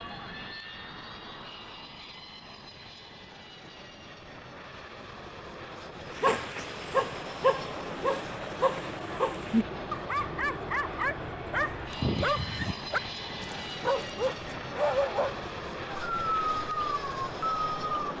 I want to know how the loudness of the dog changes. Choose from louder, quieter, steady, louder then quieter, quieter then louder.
steady.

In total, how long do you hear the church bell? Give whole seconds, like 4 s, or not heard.
not heard.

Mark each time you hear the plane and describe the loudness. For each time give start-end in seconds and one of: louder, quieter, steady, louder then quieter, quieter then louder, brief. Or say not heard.
0.0-18.1 louder.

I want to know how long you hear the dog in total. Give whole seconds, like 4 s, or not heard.
12 s.